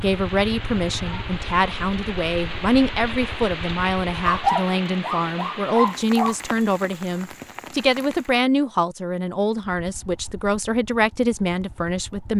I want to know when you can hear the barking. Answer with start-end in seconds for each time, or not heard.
4.2-6.3.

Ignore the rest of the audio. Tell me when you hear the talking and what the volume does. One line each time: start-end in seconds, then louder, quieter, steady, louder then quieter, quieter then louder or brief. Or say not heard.
0.0-12.3 steady.